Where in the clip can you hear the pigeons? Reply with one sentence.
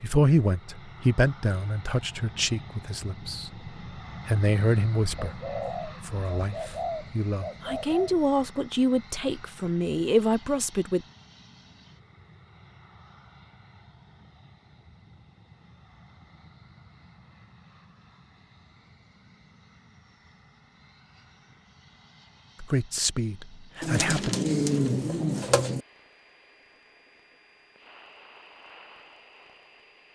You can hear the pigeons from 5.2 to 8.2 s and from 23.8 to 25.8 s.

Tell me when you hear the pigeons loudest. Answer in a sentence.
The loudest moment of the pigeons is at 25 seconds.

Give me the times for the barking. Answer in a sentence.
You can't hear the barking here.